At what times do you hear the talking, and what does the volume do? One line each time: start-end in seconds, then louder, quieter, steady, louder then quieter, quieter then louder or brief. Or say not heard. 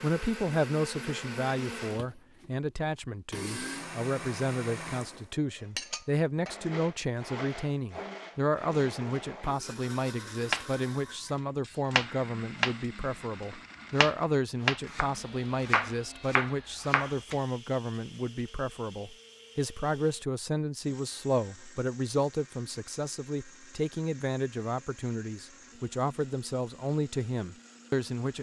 0.0-28.3 steady.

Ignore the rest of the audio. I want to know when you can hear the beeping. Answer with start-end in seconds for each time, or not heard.
not heard.